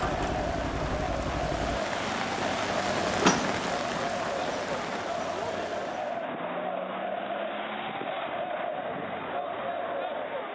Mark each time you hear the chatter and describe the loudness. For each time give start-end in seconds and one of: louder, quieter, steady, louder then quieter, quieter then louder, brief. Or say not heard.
0.0-10.5 steady.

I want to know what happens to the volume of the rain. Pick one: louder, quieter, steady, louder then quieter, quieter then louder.
louder then quieter.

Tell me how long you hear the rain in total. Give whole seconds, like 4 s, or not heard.
6 s.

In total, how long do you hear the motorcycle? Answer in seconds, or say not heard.
2 s.